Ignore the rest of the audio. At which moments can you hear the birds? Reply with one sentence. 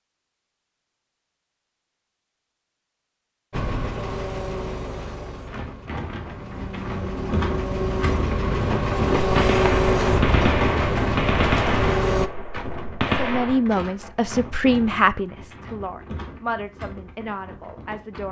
You can't hear the birds here.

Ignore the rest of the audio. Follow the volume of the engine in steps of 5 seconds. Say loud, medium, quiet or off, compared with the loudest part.
medium, loud, loud, off.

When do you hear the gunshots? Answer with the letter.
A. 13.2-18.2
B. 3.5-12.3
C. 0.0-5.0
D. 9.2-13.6
D.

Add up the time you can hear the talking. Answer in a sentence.
The talking can be heard for 5 seconds in total.